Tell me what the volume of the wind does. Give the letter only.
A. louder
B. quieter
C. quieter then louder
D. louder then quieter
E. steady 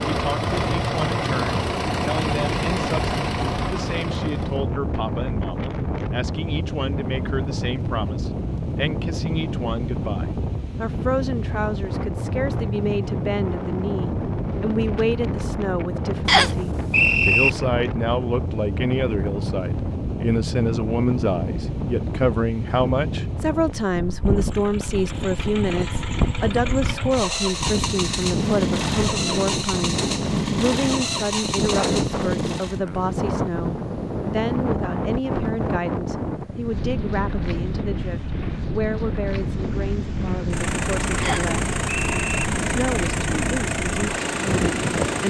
E.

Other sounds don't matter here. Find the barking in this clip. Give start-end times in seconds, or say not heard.
not heard.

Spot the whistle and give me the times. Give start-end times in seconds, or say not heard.
16.2-17.5, 41.2-42.5.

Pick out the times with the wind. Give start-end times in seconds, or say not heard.
0.0-45.2.